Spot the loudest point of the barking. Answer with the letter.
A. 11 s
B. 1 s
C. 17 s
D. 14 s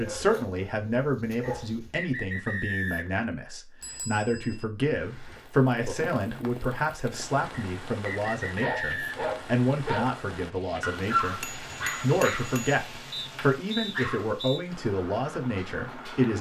A.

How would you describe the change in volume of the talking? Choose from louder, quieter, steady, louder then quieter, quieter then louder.
steady.